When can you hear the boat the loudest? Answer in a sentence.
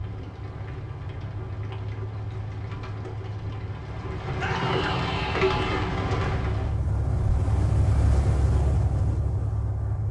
The loudest moment of the boat is at 8 seconds.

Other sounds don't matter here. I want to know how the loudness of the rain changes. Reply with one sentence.
The volume of the rain goes up.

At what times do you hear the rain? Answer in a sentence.
You can hear the rain from 0.0 to 6.8 s.